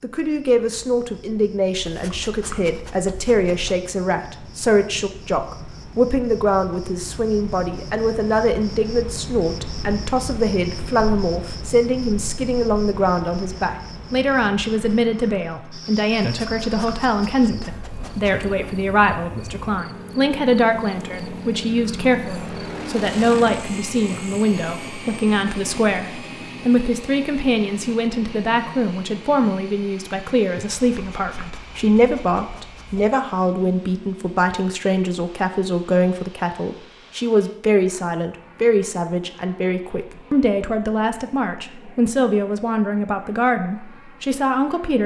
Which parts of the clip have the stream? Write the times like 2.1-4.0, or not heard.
not heard.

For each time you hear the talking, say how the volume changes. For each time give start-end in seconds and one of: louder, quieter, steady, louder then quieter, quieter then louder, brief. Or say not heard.
0.0-45.0 steady.